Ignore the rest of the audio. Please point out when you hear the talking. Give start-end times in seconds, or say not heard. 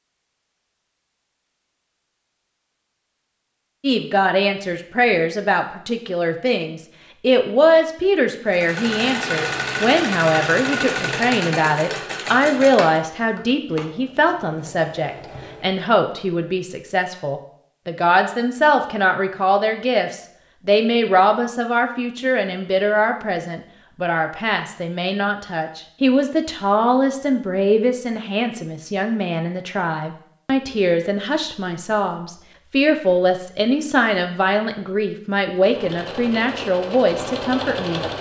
3.8-38.0.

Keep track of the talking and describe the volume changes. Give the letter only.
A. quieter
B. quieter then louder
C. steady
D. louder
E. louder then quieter
C.